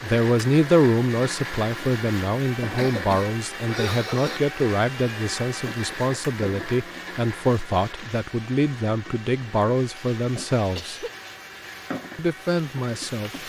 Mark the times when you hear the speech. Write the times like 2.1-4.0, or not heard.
0.0-11.1, 12.2-13.3.